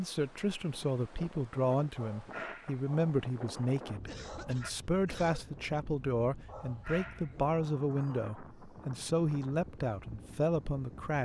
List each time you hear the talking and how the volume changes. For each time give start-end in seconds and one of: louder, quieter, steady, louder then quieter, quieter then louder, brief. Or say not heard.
0.0-11.2 steady.